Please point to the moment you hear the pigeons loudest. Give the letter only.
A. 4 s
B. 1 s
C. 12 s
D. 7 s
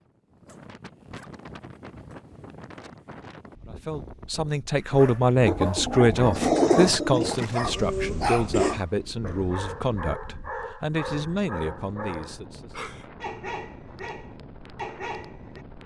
D.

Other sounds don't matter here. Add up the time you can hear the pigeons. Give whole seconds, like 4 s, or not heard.
2 s.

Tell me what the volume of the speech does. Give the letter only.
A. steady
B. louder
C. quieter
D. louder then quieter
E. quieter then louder
C.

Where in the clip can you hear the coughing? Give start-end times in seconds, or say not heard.
7.2-8.8.